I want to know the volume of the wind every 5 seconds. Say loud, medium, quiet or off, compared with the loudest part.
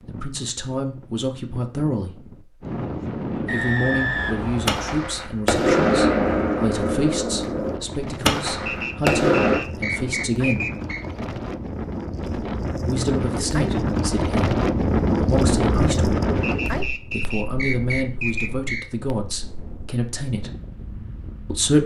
medium, medium, loud, loud, quiet.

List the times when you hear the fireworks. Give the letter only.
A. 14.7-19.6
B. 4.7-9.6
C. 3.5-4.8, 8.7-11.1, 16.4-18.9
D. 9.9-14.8
B.